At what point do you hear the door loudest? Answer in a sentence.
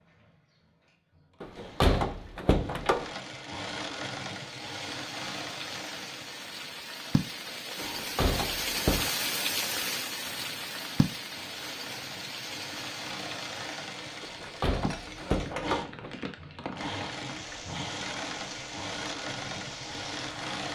The loudest moment of the door is at 2 seconds.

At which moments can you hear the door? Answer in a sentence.
You can hear the door from 1.4 to 3.1 s, from 7.8 to 9.2 s and from 14.2 to 16.1 s.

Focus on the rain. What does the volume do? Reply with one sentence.
The volume of the rain goes up, then down.